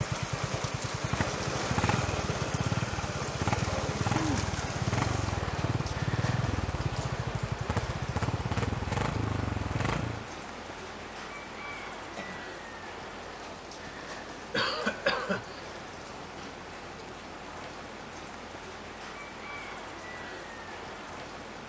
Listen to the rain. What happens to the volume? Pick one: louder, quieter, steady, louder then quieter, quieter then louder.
quieter.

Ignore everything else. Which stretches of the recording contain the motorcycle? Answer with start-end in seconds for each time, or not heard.
0.0-10.2.